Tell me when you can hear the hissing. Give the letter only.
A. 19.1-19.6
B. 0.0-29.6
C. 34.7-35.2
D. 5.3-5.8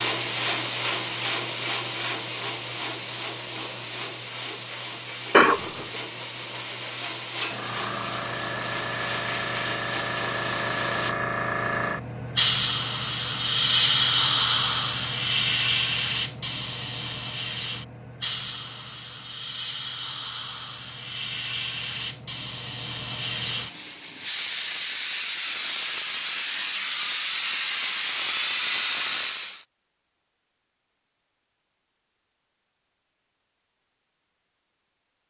B.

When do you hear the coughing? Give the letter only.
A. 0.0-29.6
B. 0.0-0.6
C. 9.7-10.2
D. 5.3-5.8
D.